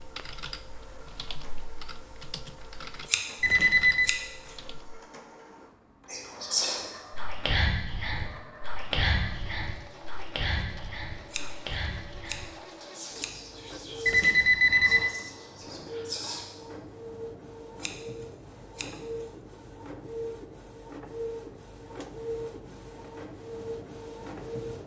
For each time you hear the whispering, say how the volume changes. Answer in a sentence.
The whispering can be heard from 6.0 to 16.4 s, getting quieter.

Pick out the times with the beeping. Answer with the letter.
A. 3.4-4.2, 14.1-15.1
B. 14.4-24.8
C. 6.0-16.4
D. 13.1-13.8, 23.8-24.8
A.